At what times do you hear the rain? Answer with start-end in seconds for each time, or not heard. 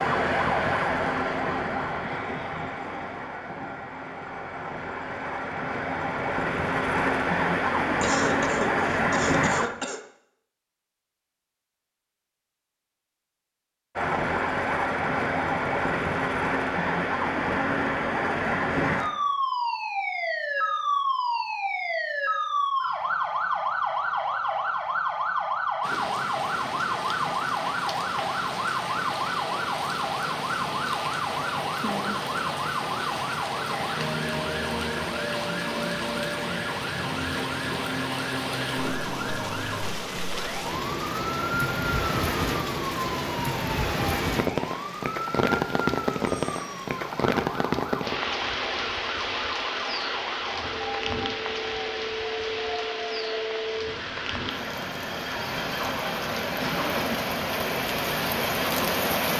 25.8-59.3.